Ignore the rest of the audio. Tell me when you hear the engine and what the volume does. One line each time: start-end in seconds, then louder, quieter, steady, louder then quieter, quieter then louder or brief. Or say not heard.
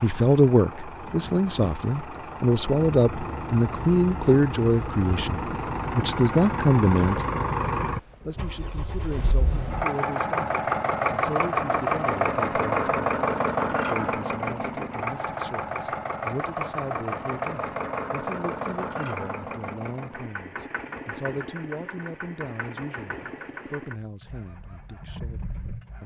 0.0-26.0 louder then quieter.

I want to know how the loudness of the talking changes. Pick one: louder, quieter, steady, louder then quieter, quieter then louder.
quieter.